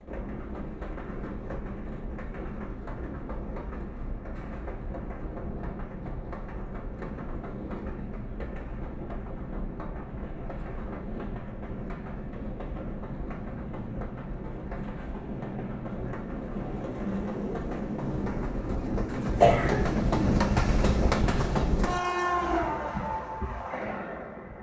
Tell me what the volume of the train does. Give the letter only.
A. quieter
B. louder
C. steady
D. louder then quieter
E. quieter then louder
B.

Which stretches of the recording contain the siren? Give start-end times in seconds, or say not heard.
not heard.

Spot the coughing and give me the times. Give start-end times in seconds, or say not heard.
19.4-20.0.